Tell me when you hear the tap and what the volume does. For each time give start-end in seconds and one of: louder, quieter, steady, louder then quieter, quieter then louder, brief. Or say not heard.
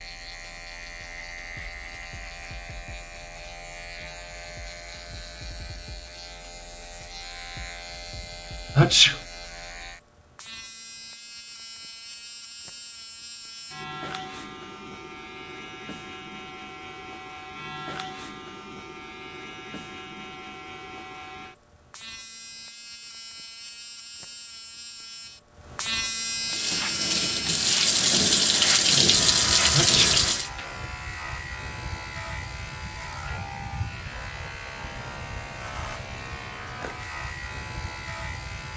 26.4-30.5 louder.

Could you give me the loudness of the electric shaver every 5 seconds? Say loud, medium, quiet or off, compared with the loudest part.
medium, medium, medium, medium, medium, loud, medium, medium.